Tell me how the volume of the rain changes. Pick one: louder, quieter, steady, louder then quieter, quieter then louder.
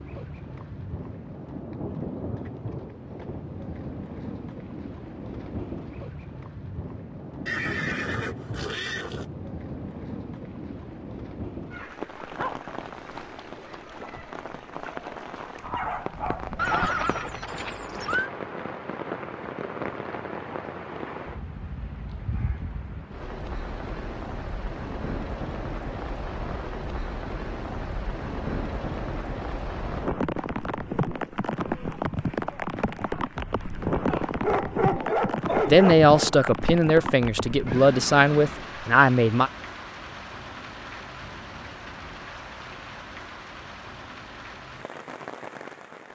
louder then quieter.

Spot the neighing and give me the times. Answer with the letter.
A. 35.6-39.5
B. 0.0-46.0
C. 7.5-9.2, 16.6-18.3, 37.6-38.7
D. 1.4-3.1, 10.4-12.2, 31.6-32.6
C.